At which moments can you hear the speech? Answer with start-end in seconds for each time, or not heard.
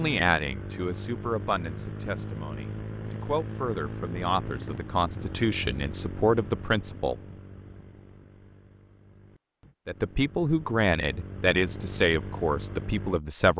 0.0-7.2, 9.8-13.5.